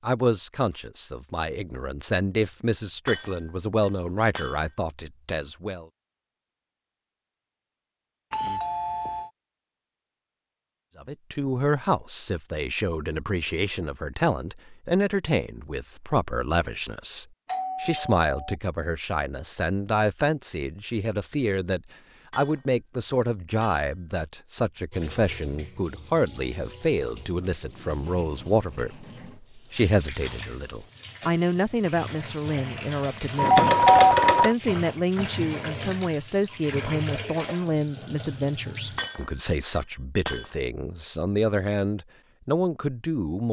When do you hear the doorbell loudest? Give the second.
34 s.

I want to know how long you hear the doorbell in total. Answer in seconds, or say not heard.
3 s.